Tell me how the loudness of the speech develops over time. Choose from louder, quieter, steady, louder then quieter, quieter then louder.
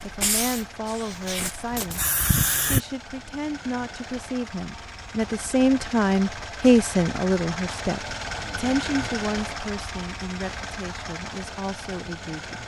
louder then quieter.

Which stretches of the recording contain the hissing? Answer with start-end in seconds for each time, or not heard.
0.0-2.8.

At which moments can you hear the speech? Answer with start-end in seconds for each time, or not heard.
0.0-12.6.